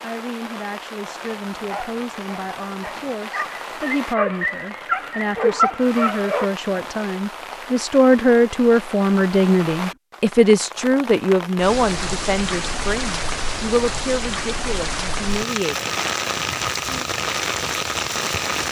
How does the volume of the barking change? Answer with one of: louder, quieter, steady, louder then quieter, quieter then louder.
louder.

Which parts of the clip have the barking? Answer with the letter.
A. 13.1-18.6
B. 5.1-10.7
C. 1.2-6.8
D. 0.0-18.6
C.